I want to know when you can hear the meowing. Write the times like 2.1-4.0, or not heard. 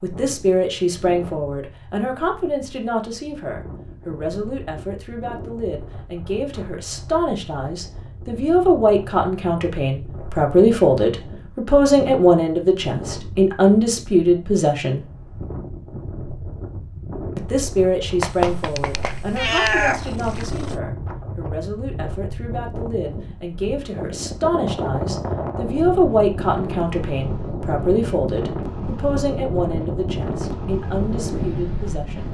18.2-20.8.